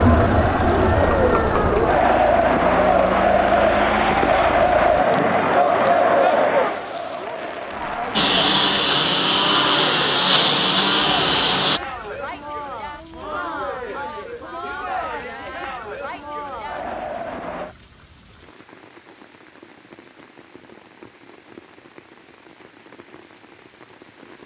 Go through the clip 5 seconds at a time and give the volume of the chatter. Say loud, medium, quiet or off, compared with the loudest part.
loud, loud, quiet, quiet, off.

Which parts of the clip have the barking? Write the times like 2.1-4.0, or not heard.
not heard.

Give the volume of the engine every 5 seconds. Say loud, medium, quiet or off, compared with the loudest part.
quiet, loud, loud, off, off.